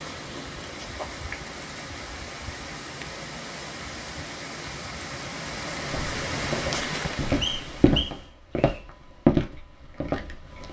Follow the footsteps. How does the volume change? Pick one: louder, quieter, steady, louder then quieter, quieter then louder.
louder then quieter.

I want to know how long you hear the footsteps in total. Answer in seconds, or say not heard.
5 s.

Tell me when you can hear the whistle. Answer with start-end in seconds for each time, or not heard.
7.4-8.8.